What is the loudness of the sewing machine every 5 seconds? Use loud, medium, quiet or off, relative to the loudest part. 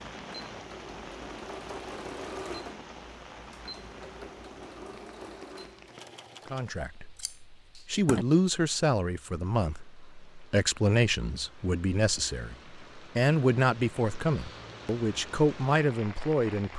loud, loud, off, off.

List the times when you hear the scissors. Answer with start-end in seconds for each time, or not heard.
7.2-8.2.